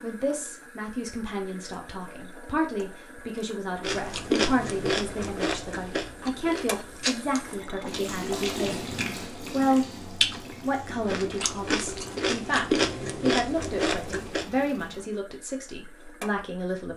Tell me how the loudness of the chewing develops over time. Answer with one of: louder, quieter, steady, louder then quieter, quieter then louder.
quieter then louder.